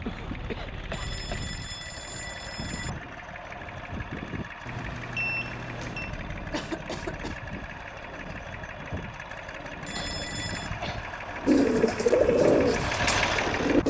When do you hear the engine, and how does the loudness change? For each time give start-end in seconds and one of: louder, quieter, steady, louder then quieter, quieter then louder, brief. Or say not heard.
0.0-13.8 louder.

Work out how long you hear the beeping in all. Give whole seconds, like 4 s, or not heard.
4 s.